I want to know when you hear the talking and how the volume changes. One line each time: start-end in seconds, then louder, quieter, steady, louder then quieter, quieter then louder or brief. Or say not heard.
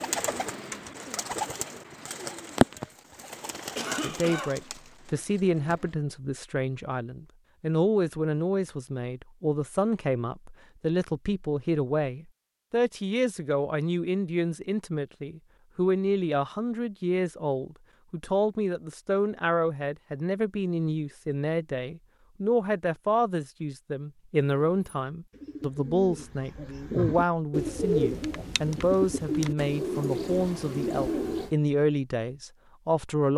4.0-33.3 steady.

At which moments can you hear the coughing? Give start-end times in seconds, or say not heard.
3.8-4.6.